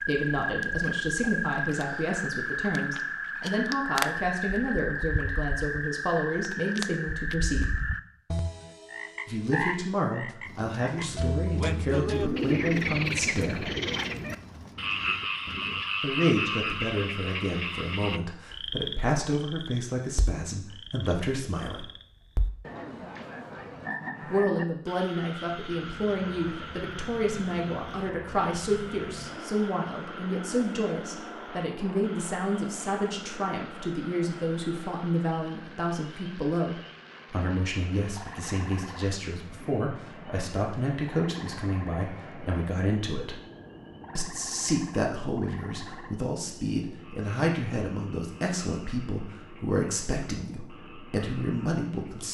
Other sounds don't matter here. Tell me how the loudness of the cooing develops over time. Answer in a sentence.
The loudness of the cooing goes up, then down.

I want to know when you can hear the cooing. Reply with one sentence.
You can hear the cooing from 10.4 to 15.8 s.